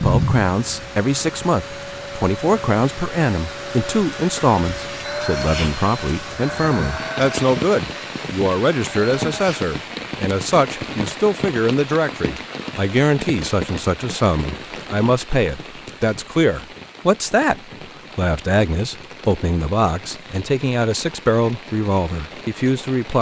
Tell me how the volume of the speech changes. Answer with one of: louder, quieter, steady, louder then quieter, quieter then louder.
steady.